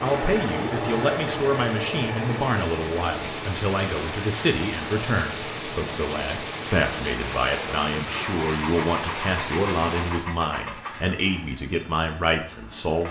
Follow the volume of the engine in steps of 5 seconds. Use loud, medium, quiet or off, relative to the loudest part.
loud, medium, medium.